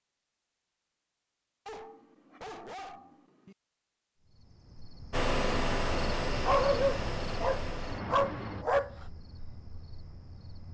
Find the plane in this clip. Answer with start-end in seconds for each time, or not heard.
5.1-8.7.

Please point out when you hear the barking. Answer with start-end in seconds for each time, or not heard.
1.6-3.5, 6.5-9.1.